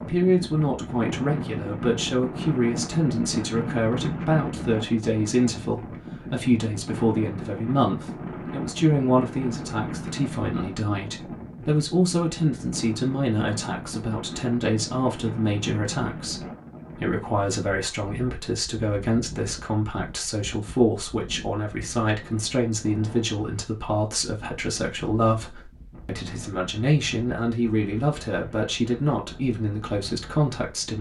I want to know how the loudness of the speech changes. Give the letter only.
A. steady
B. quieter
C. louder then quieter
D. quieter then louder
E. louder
A.